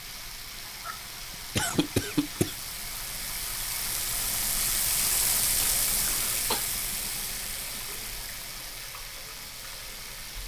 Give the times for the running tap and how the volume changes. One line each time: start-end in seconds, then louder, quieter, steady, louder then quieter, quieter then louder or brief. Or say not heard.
0.0-10.4 louder then quieter.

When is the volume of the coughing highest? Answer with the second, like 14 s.
2 s.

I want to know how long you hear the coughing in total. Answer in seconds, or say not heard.
3 s.